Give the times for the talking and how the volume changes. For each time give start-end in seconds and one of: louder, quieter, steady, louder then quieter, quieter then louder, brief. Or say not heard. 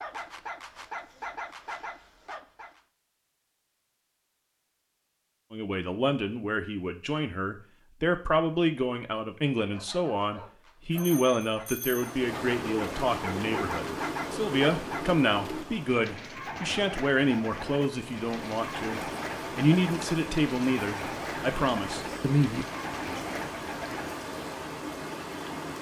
5.5-22.6 steady.